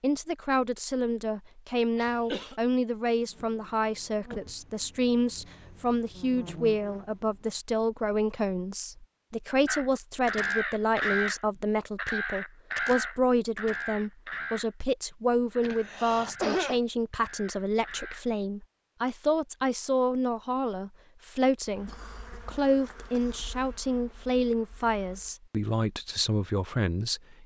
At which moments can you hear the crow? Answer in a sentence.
You can hear the crow from 9.7 to 14.7 s and from 15.5 to 18.3 s.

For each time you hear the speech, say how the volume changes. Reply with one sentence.
The speech can be heard from 0.0 to 27.4 s, at a steady volume.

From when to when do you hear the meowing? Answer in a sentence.
The meowing can't be heard in this clip.